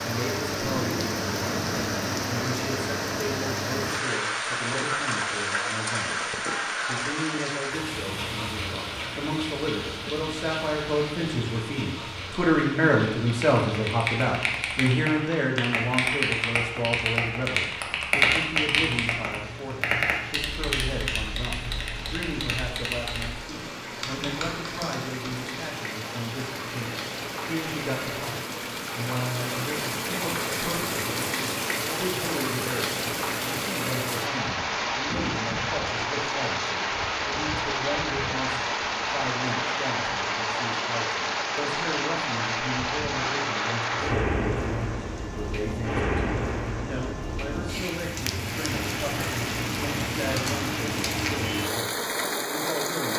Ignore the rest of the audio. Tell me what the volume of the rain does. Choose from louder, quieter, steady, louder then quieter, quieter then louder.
quieter then louder.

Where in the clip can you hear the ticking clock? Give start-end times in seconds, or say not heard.
not heard.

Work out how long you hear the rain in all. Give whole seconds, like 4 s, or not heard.
53 s.